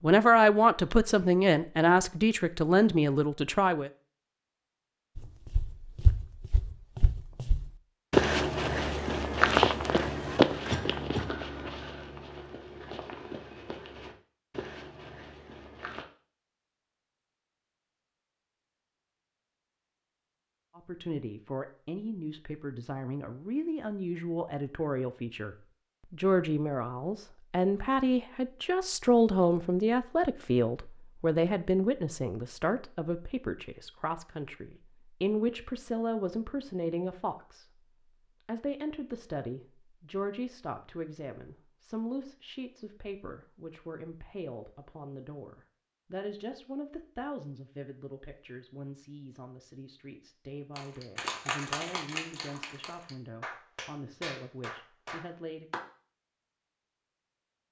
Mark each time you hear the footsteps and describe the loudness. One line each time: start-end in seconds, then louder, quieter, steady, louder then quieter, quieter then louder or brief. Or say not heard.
5.2-16.1 louder then quieter.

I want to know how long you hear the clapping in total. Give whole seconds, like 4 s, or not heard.
5 s.